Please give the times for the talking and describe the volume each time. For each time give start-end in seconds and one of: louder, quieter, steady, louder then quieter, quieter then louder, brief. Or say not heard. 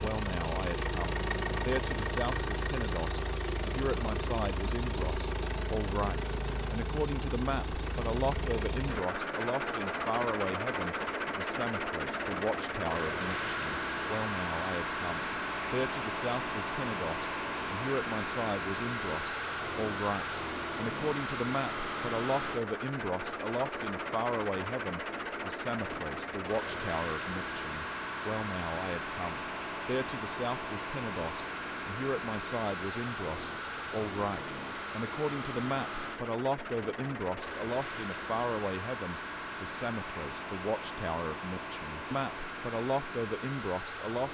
0.0-44.3 steady.